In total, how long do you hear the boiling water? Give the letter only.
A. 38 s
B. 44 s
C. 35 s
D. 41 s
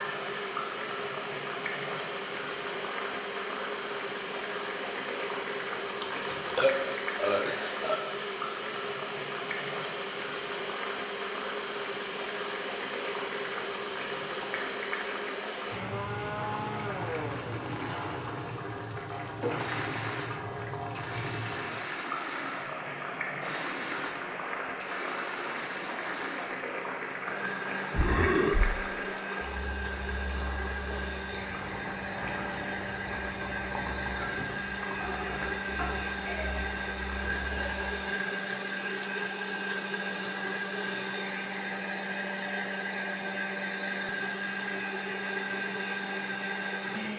A.